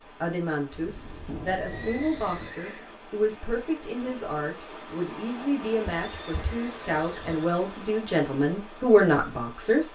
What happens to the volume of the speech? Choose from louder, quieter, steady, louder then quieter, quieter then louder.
louder.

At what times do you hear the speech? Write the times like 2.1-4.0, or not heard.
0.2-9.9.